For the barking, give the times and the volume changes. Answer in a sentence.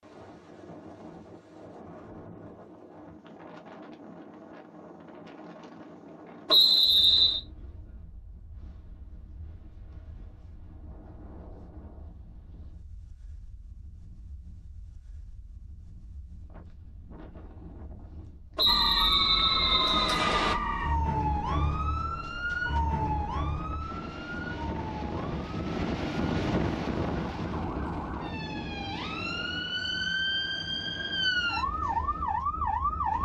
The barking can't be heard in this clip.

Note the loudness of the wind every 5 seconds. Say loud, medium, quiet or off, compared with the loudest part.
quiet, quiet, quiet, quiet, medium, loud, quiet.